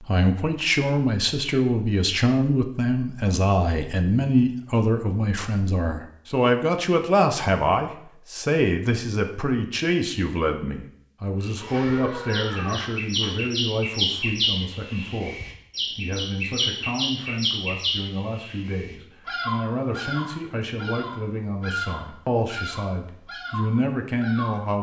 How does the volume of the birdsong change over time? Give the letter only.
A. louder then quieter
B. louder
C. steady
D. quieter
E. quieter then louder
D.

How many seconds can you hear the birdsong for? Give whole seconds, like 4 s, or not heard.
13 s.